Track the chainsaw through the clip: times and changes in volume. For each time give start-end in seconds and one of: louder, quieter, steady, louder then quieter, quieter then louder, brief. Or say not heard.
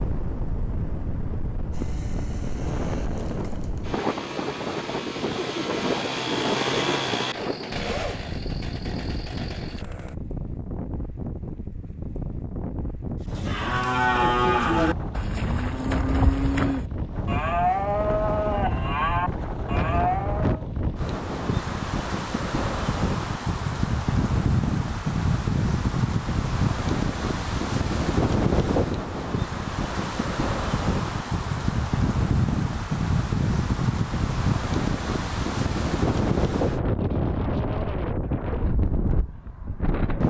1.7-10.2 louder then quieter.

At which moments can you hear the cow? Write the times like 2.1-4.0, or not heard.
13.3-20.6.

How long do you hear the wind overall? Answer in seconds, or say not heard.
40 s.